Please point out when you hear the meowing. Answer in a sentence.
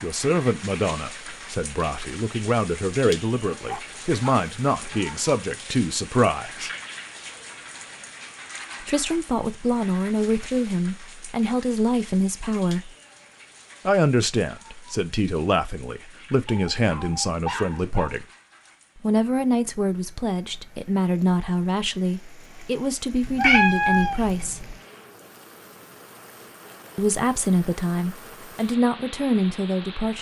You can hear the meowing from 23.2 to 24.8 s.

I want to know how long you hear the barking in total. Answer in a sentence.
You can hear the barking for 2 seconds altogether.